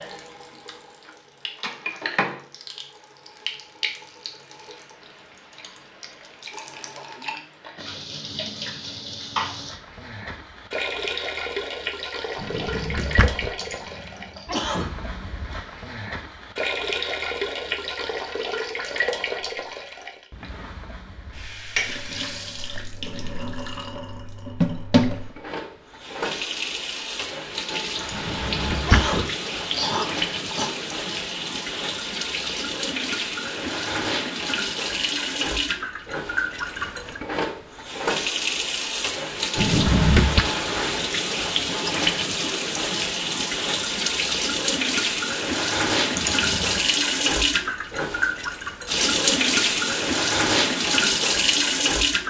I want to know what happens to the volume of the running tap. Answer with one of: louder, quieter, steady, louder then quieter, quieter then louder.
louder.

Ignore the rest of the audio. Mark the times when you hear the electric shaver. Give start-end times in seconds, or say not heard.
not heard.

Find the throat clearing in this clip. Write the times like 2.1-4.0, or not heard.
13.6-14.9, 27.9-30.7, 46.1-46.8.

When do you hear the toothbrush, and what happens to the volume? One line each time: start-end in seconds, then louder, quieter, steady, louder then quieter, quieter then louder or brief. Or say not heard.
not heard.